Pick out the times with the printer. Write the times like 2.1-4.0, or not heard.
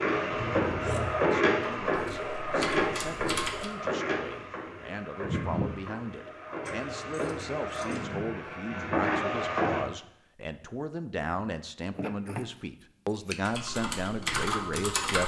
0.0-9.8.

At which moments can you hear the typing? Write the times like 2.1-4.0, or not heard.
1.9-3.7, 13.3-15.2.